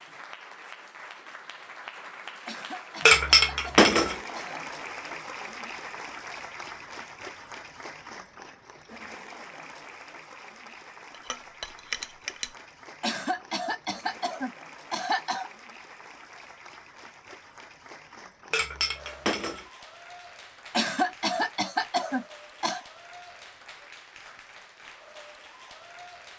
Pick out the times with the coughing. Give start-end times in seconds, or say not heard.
2.5-4.6, 13.0-15.5, 20.7-22.8.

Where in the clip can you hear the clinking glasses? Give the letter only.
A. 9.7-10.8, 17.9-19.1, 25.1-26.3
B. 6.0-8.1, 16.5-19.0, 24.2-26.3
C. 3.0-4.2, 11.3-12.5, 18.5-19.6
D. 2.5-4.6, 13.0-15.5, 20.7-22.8
C.